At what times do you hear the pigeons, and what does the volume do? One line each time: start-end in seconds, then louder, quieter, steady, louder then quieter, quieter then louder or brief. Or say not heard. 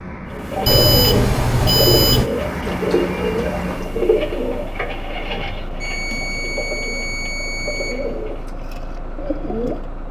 0.3-9.9 quieter.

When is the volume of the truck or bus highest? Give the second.
3 s.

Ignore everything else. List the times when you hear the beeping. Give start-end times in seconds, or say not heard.
0.7-2.3, 5.8-8.6.